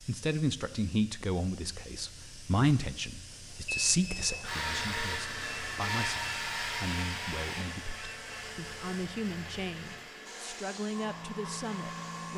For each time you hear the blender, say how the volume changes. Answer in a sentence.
The blender can be heard from 4.5 to 12.3 s, getting quieter.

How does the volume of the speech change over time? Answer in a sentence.
The loudness of the speech goes down.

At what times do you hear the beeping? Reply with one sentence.
The beeping can be heard from 3.6 to 4.3 s.